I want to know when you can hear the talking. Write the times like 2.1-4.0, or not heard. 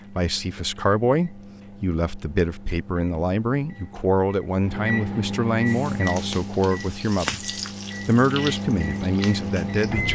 0.1-7.5, 8.1-10.1.